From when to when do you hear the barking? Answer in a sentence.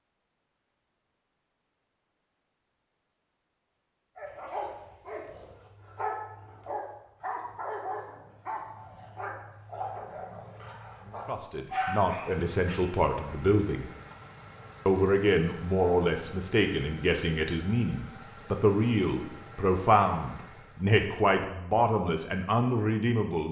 You can hear the barking from 4.2 to 12.8 s.